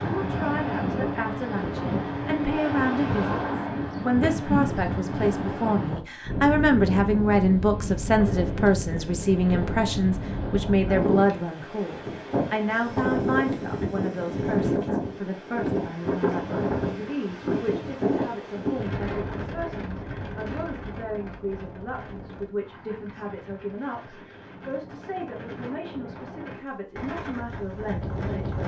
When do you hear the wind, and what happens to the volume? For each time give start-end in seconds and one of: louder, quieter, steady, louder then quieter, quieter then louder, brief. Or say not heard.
0.0-28.6 quieter.